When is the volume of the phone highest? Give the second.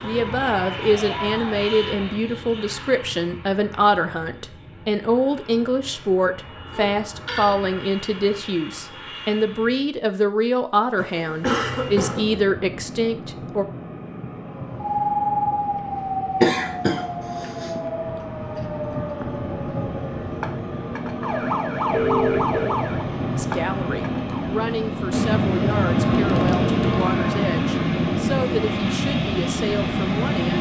22 s.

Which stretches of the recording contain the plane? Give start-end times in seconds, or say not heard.
0.0-9.9, 11.4-30.5.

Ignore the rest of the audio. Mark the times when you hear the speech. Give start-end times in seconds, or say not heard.
0.0-13.7, 23.4-30.5.